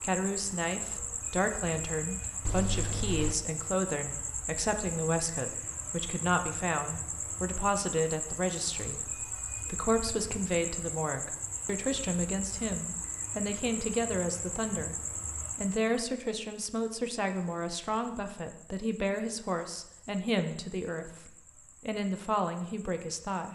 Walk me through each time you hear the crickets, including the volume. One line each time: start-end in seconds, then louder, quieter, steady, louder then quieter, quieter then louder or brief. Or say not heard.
0.0-23.4 quieter.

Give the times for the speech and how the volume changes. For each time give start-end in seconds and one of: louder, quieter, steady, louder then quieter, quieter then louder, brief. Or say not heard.
0.0-14.9 steady
15.6-23.4 steady.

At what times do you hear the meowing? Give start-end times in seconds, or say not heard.
2.5-3.4.